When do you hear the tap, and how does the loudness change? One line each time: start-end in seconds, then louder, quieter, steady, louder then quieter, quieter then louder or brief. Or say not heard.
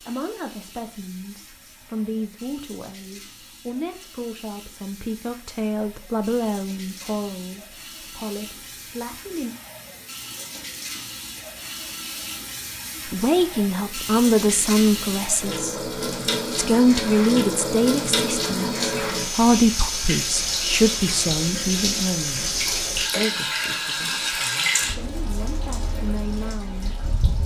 0.0-27.4 louder.